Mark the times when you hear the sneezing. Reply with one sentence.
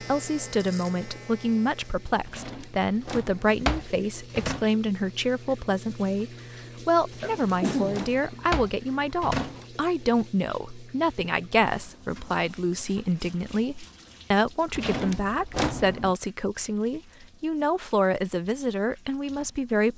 The sneezing can be heard from 7.2 to 8.3 s.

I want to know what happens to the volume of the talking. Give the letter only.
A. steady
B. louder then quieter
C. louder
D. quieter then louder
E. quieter
A.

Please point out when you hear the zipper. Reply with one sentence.
You can't hear the zipper here.